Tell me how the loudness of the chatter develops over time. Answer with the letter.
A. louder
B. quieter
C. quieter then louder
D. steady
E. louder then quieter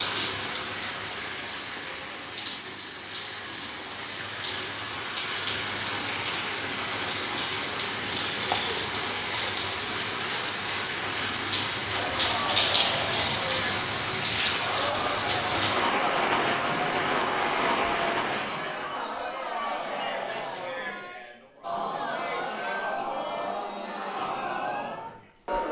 D.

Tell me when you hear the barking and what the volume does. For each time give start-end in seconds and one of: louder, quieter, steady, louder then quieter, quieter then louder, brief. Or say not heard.
not heard.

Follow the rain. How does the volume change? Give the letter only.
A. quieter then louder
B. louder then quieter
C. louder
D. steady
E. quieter
C.